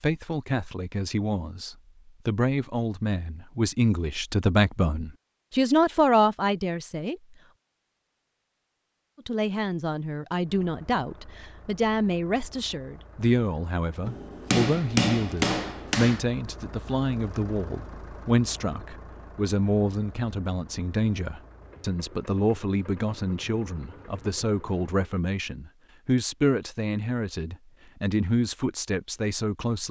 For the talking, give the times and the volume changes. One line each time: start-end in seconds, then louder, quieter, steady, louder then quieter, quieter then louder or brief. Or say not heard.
0.0-7.3 louder
9.2-29.8 steady.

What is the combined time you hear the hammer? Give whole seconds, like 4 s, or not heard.
2 s.